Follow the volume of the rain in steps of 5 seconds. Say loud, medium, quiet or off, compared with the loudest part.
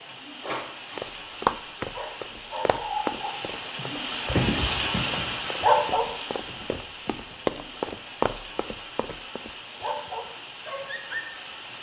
loud, loud, medium.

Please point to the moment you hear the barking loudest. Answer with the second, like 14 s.
6 s.